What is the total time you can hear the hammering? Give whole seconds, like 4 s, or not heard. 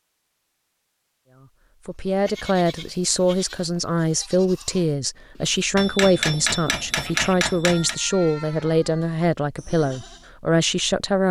2 s.